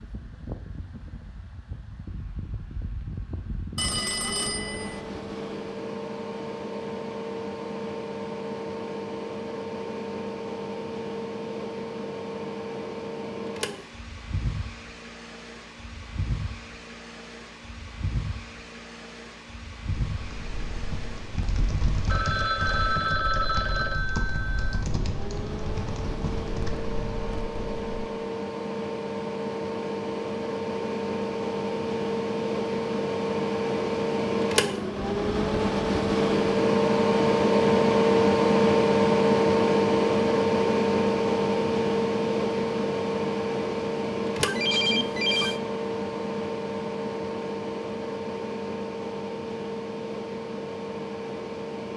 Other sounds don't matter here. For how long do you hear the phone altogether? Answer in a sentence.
You can hear the phone for 5 seconds altogether.